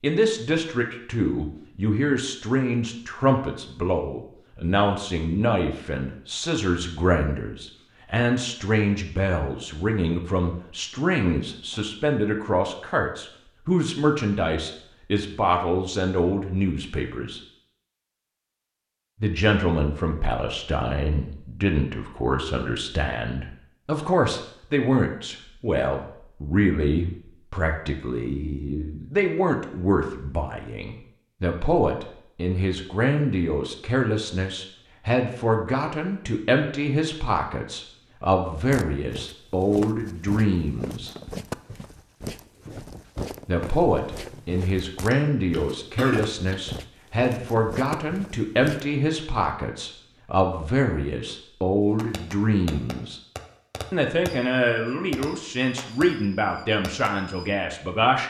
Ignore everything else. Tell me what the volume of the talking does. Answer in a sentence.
The volume of the talking stays about the same.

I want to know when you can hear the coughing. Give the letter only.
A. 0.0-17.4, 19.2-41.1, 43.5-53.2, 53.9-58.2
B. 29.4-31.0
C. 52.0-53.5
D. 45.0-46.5
D.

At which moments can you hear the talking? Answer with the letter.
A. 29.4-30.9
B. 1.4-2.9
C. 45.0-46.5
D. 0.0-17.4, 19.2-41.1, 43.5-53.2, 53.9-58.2
D.